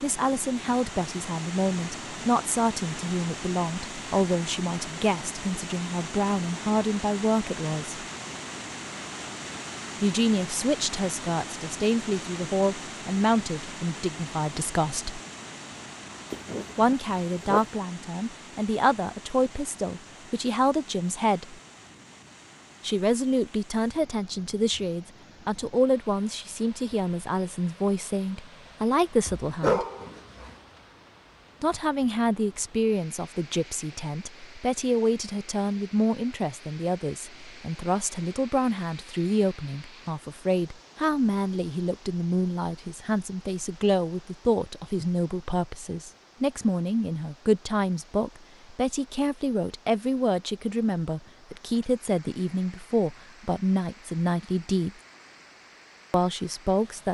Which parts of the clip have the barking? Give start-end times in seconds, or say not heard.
16.3-17.7, 29.2-30.6.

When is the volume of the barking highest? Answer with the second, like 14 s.
30 s.